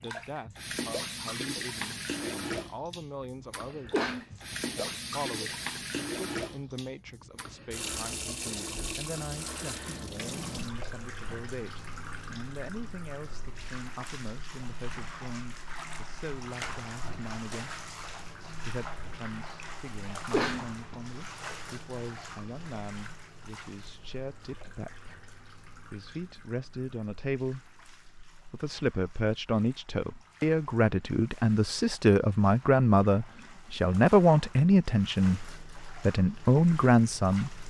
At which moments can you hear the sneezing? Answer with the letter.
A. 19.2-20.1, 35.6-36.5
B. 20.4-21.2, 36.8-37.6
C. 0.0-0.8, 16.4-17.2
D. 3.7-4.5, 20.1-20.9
D.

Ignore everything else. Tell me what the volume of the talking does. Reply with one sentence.
The loudness of the talking goes up.